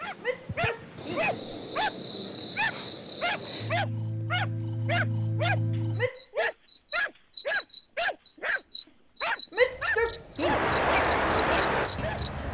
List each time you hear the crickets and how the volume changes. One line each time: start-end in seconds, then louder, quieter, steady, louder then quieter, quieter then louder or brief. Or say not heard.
0.0-12.4 louder.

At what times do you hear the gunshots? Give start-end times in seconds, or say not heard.
not heard.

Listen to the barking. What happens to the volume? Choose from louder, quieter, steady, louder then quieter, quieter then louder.
steady.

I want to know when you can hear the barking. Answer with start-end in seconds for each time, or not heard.
0.0-8.6, 9.2-12.2.